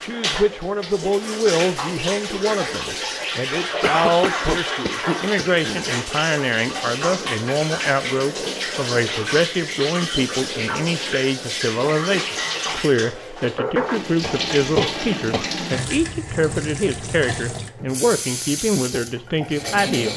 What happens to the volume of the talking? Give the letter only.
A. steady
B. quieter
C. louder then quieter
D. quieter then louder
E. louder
A.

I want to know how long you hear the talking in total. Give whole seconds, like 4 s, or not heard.
20 s.